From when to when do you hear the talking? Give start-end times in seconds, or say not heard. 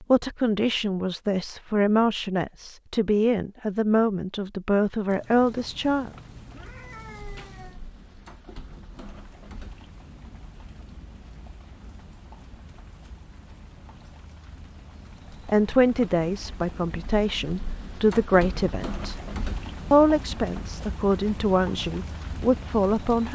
0.0-6.1, 15.4-19.1, 19.9-23.2.